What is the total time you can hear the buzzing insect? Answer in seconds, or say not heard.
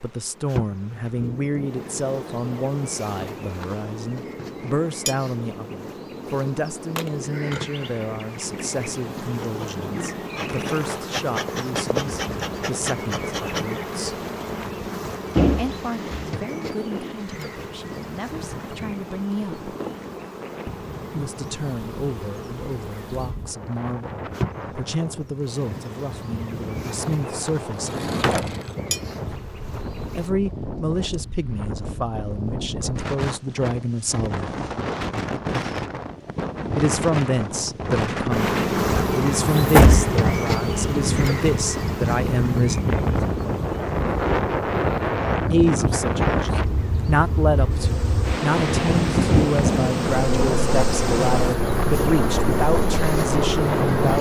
46 s.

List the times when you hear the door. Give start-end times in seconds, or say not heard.
15.3-16.2, 27.8-28.6, 39.0-40.1.